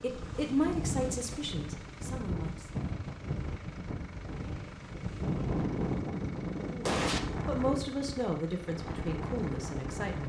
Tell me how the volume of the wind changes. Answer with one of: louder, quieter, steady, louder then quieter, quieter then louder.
steady.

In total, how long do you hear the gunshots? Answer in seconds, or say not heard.
2 s.